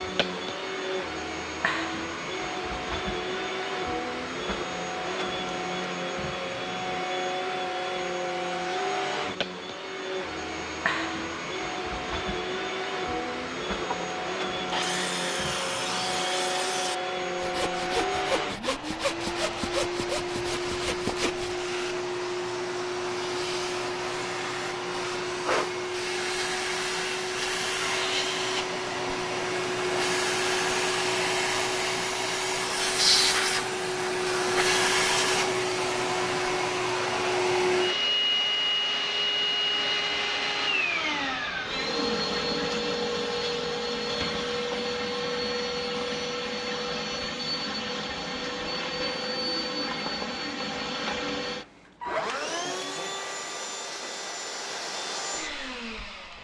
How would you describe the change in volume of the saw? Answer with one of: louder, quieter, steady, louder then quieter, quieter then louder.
steady.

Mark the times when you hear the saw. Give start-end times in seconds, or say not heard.
13.8-21.6.